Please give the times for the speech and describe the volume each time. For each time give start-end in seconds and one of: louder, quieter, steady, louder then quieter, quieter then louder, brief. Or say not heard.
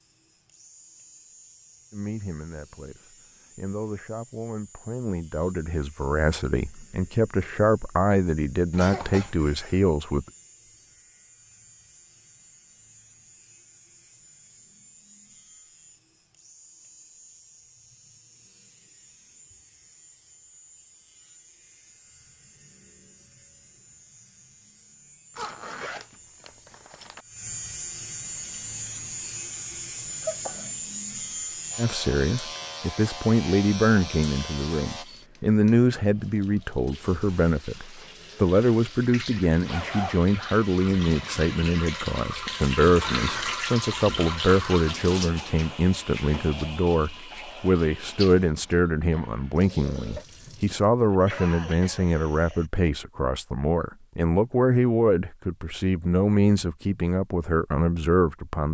1.9-10.2 louder
31.8-58.7 steady.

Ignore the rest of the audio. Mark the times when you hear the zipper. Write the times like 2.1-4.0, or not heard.
8.7-9.3, 25.4-27.2, 39.6-40.2.